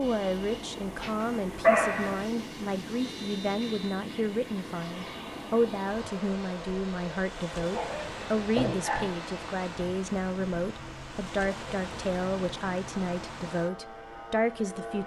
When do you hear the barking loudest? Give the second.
2 s.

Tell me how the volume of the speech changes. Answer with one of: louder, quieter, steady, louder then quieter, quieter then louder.
steady.